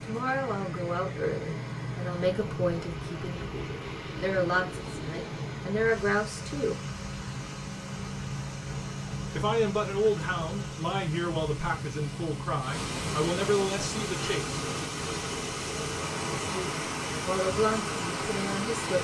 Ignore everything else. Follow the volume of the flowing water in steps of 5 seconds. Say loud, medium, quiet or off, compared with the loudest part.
medium, medium, loud, loud.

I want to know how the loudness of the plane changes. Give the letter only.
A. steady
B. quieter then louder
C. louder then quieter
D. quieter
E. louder
A.